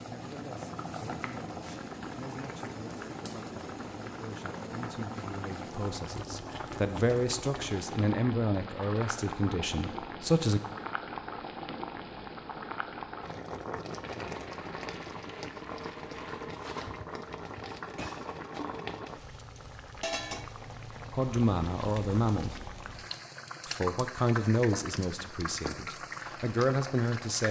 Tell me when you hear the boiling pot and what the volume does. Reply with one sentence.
The boiling pot can be heard from 0.0 to 27.4 s, at a steady volume.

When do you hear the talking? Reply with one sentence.
The talking can be heard from 0.1 to 10.6 s, from 21.1 to 22.6 s and from 23.6 to 27.4 s.